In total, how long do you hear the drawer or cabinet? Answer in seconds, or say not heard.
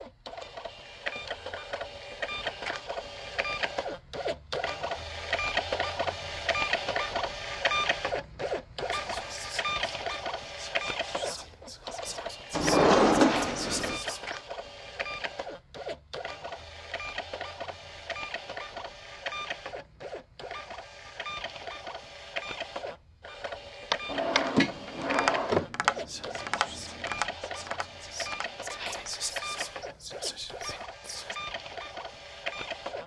3 s.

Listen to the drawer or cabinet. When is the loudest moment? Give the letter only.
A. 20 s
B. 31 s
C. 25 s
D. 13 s
D.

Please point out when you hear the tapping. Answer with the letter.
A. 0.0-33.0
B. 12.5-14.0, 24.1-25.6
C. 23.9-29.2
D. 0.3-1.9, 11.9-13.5
C.